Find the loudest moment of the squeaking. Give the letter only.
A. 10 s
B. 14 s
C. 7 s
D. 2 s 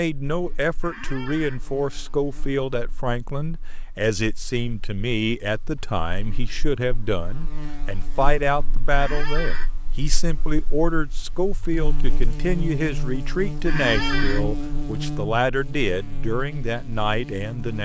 B.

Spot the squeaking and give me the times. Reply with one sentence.
You can hear the squeaking from 0.8 to 1.6 s, from 8.9 to 9.7 s and from 13.7 to 14.4 s.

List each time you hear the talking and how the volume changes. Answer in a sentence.
The talking can be heard from 0.0 to 17.8 s, at a steady volume.